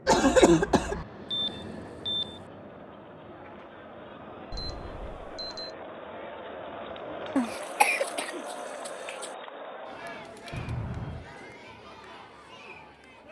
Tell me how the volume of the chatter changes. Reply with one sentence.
The loudness of the chatter goes up, then down.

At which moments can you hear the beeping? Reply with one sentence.
You can hear the beeping from 1.3 to 2.4 s, from 4.5 to 5.7 s and from 10.5 to 11.3 s.